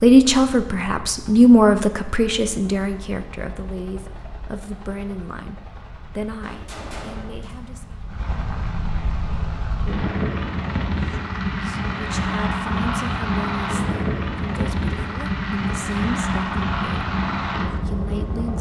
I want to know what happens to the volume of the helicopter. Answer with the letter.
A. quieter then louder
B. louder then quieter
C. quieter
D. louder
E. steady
D.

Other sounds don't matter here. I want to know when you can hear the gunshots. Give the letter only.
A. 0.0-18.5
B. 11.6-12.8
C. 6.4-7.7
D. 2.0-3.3
C.